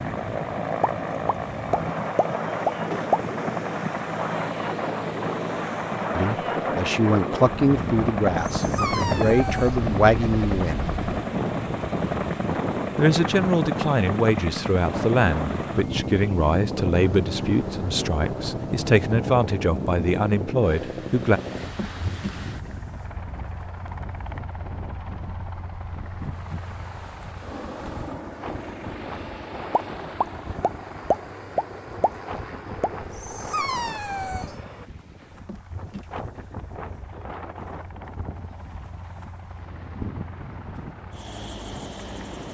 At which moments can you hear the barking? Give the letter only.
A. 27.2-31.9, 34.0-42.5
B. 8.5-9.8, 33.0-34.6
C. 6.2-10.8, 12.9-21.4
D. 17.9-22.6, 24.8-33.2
B.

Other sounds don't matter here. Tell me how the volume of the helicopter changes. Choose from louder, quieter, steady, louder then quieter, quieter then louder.
quieter.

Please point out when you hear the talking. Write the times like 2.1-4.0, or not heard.
6.2-10.8, 12.9-21.4.